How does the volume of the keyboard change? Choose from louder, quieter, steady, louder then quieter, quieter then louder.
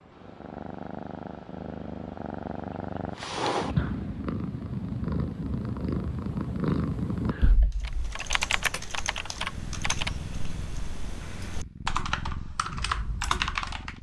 quieter then louder.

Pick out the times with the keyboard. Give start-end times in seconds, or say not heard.
7.7-13.9.